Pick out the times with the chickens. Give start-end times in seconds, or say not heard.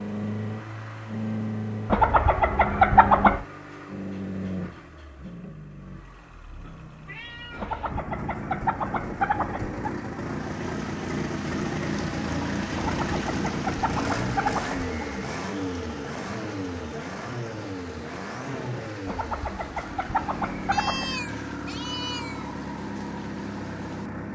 1.9-3.5, 7.5-9.9, 12.8-14.8, 19.1-21.1.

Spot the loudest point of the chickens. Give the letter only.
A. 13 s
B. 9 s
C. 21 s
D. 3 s
D.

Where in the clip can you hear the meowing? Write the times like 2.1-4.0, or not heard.
7.0-7.9, 20.7-22.6.